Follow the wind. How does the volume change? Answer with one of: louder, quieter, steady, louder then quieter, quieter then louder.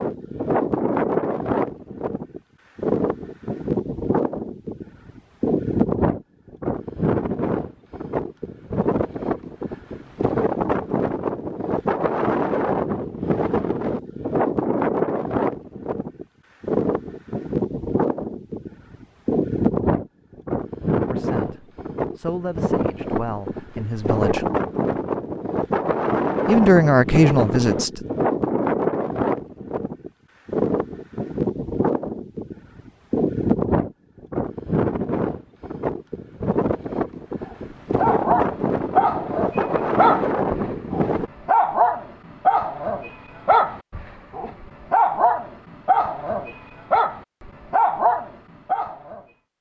steady.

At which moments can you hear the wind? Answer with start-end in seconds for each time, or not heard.
0.0-41.3.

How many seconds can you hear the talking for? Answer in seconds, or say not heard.
5 s.